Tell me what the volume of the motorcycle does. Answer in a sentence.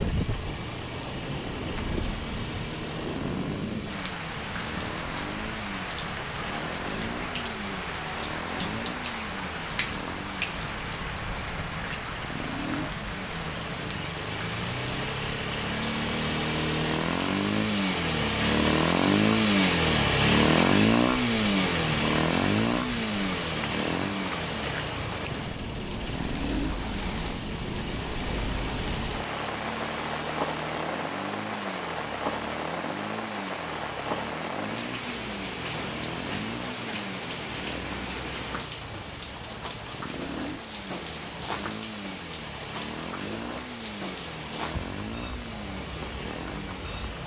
The loudness of the motorcycle goes up, then down.